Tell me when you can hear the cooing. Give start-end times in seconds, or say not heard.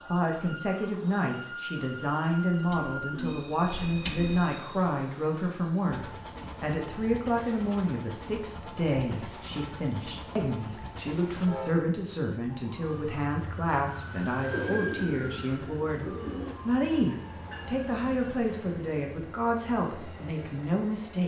2.6-4.4, 14.5-16.6.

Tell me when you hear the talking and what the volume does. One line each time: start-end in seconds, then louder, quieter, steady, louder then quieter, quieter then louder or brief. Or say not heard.
0.1-21.2 steady.